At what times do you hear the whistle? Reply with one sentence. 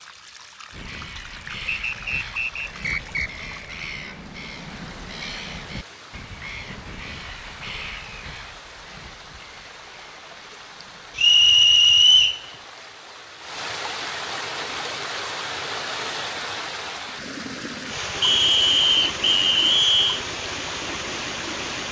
The whistle can be heard from 1.6 to 3.3 s, from 11.2 to 12.4 s and from 18.2 to 20.2 s.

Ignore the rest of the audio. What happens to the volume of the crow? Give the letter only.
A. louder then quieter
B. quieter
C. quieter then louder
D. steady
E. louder
B.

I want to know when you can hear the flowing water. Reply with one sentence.
You can hear the flowing water from 0.0 to 21.8 s.